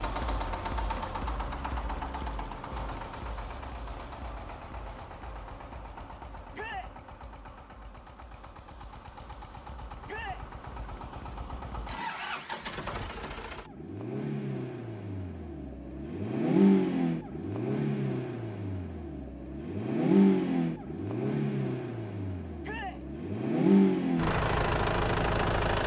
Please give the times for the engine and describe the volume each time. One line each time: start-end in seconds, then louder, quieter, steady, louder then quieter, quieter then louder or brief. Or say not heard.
0.0-25.8 quieter then louder.